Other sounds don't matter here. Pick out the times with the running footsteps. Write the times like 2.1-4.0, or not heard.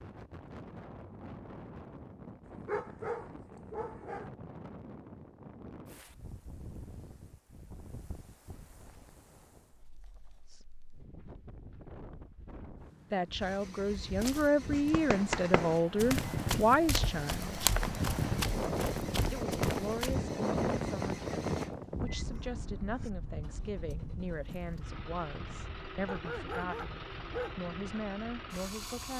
14.2-20.1.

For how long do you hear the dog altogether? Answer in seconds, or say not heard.
3 s.